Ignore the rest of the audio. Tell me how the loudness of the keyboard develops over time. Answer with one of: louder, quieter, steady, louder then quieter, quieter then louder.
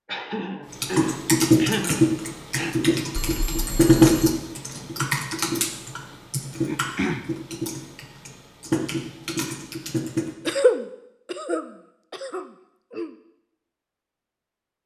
quieter.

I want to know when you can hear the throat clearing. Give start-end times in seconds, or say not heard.
0.1-2.8, 6.7-7.2, 10.4-13.1.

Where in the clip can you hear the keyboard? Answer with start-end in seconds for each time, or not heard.
0.7-10.6.